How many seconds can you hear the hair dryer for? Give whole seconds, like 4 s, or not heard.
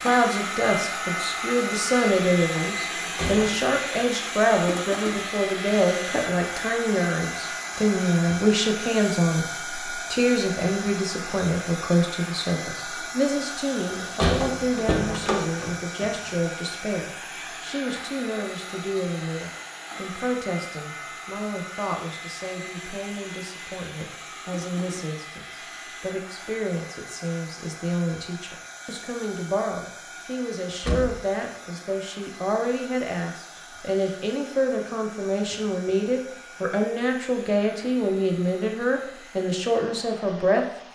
41 s.